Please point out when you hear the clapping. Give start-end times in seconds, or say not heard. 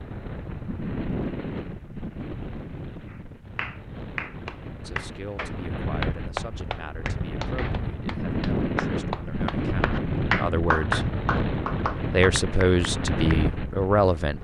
3.0-13.4.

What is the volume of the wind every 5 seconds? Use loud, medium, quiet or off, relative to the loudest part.
medium, loud, loud.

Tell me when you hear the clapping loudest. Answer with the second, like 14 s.
11 s.